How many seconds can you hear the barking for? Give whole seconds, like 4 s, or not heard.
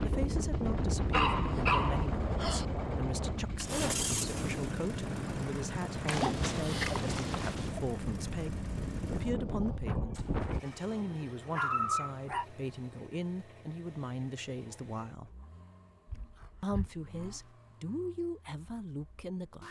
6 s.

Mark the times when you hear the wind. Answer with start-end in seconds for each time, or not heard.
0.0-10.6.